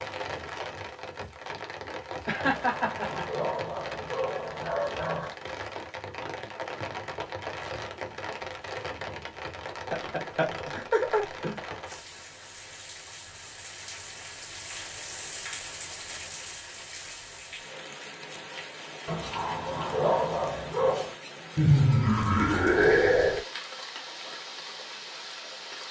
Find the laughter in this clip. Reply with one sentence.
The laughter can be heard from 2.2 to 3.2 s, from 9.9 to 11.6 s and from 21.6 to 23.4 s.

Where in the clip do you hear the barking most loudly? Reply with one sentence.
The volume of the barking peaks at 20 seconds.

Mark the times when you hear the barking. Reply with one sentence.
You can hear the barking from 2.4 to 5.3 s and from 19.1 to 21.1 s.